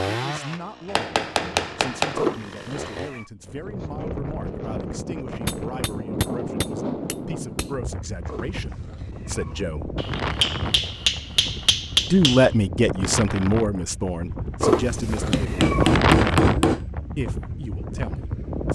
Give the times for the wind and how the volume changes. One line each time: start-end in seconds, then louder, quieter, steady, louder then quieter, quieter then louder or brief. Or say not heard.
3.4-18.7 louder.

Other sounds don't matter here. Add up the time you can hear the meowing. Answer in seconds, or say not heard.
4 s.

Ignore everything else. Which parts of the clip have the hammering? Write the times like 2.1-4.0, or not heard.
0.8-2.2, 5.5-7.7, 9.9-12.5, 15.3-16.8.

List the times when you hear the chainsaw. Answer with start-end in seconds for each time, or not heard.
0.0-3.1.